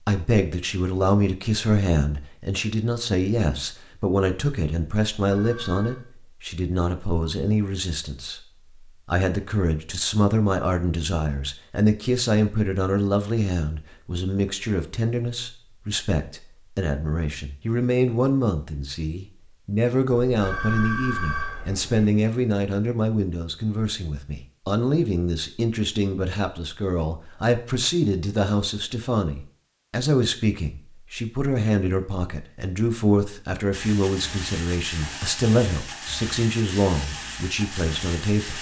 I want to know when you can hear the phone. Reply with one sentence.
The phone can be heard from 5.2 to 6.0 s and from 20.3 to 22.1 s.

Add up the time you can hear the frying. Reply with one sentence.
You can hear the frying for 5 seconds altogether.